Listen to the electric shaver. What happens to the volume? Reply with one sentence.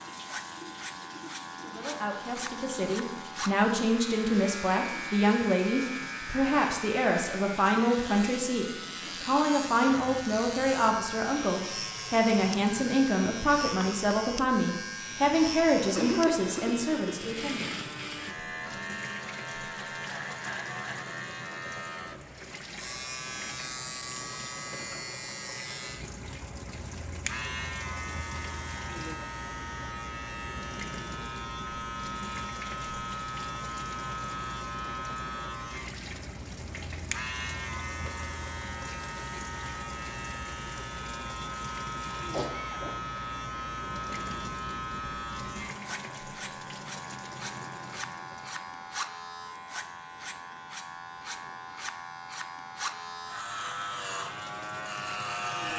The volume of the electric shaver stays about the same.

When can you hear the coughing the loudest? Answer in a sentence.
The loudest moment of the coughing is at 16 seconds.